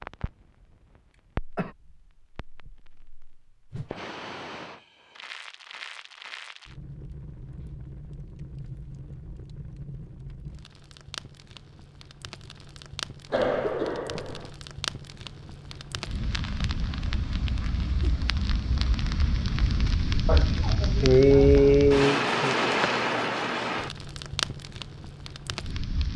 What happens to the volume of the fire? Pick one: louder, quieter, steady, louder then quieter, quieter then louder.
louder.